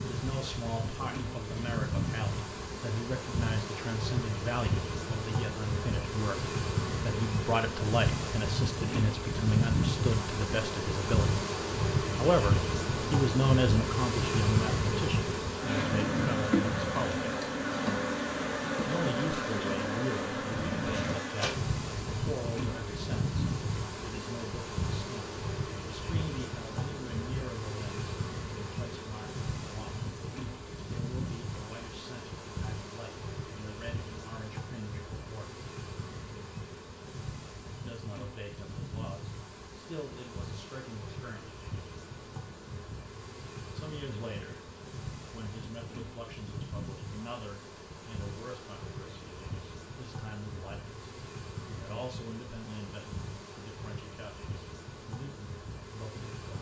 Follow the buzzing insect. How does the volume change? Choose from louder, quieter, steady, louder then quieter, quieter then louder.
quieter.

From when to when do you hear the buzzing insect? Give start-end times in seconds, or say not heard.
0.0-56.5.